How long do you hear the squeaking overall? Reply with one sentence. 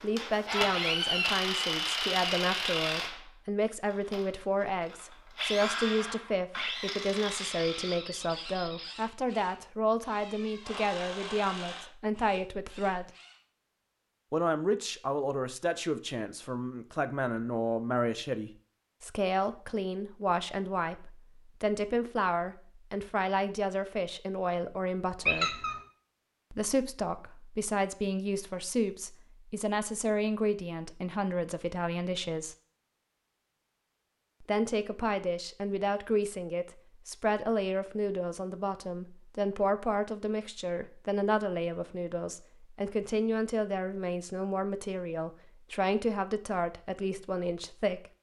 The squeaking can be heard for 2 seconds in total.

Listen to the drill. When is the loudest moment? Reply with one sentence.
The loudest moment of the drill is at 1 second.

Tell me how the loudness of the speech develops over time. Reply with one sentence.
The loudness of the speech stays about the same.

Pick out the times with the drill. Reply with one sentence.
The drill can be heard from 0.0 to 13.3 s.